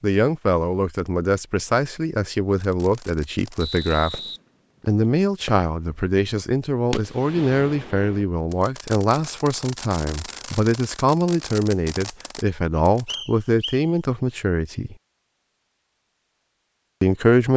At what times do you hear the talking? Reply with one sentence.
You can hear the talking from 0.0 to 4.2 s, from 4.8 to 14.9 s and from 17.0 to 17.5 s.